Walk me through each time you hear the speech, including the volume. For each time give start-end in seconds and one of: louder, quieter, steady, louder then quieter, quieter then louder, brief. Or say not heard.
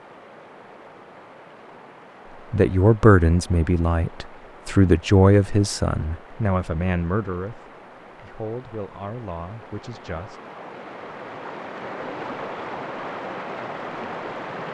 2.5-10.4 quieter.